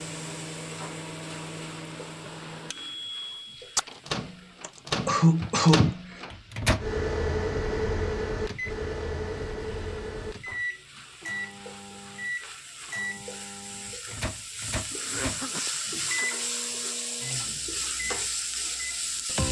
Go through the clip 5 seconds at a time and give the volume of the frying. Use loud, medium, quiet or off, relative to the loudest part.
quiet, quiet, medium, loud.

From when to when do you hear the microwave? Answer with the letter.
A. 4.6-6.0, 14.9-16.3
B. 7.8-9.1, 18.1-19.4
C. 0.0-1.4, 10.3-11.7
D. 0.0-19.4
D.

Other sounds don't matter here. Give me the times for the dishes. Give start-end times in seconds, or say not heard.
not heard.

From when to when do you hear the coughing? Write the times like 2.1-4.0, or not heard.
4.6-6.0, 14.9-16.3.